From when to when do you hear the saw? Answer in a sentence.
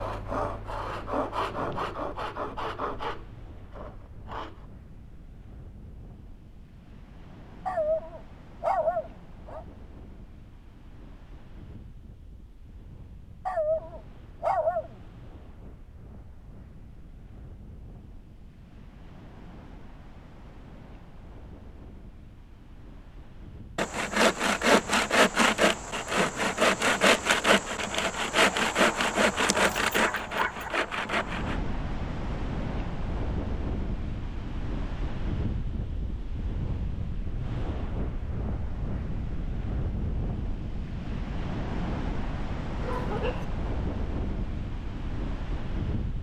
You can hear the saw from 0.0 to 4.7 s and from 23.8 to 31.6 s.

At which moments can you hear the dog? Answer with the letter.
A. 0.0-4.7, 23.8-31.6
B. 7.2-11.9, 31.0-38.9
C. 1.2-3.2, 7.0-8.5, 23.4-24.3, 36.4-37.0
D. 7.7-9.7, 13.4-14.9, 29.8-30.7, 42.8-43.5
D.